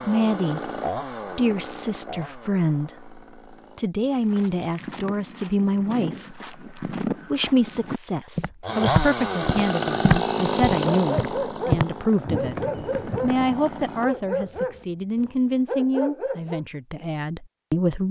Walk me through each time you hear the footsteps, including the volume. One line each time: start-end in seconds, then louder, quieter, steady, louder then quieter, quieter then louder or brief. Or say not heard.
4.0-14.1 louder then quieter.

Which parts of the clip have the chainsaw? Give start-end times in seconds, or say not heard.
0.0-3.9, 8.6-14.1.